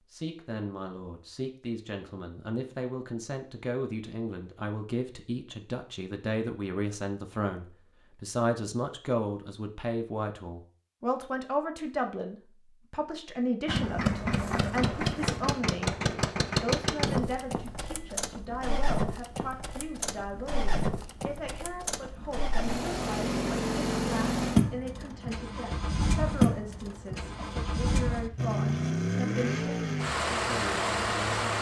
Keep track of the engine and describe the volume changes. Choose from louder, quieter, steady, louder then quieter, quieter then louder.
quieter then louder.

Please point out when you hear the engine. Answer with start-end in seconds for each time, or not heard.
13.7-31.5.